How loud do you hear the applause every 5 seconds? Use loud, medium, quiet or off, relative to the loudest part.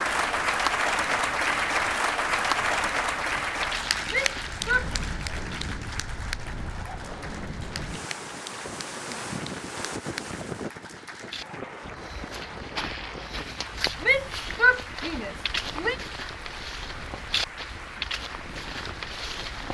loud, quiet, quiet, quiet.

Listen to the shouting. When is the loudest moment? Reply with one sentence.
The volume of the shouting peaks at 15 seconds.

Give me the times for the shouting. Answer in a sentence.
The shouting can be heard from 4.0 to 4.9 s and from 14.0 to 15.9 s.